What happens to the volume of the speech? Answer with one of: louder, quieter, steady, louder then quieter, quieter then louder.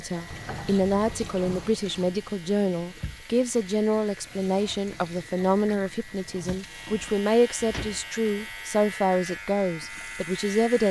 steady.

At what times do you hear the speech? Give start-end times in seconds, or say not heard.
0.0-10.8.